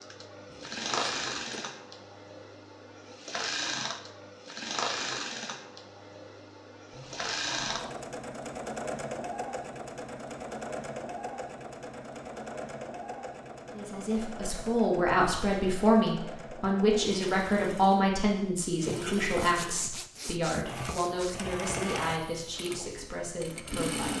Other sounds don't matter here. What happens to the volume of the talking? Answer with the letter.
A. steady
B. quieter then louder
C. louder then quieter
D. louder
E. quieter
E.